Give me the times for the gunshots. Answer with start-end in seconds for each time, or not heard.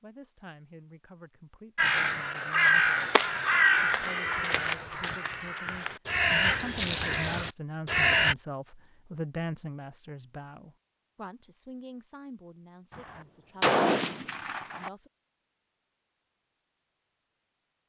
12.9-14.9.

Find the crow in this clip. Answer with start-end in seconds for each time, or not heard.
1.8-8.3.